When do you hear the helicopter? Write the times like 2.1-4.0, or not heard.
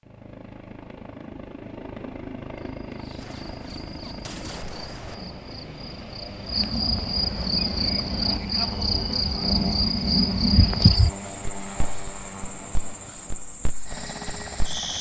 0.0-14.9.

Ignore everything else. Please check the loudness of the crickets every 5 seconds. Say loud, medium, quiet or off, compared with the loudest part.
quiet, loud, loud.